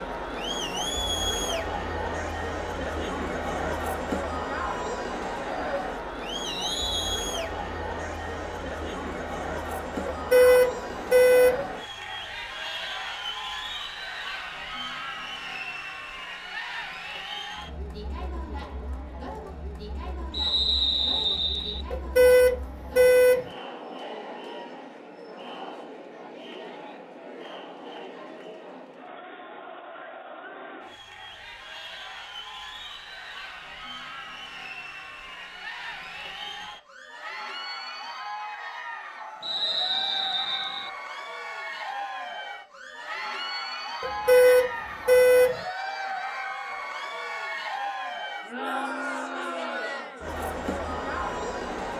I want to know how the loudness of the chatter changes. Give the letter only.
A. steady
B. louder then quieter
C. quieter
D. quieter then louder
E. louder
D.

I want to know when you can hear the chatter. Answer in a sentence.
You can hear the chatter from 0.0 to 51.9 s.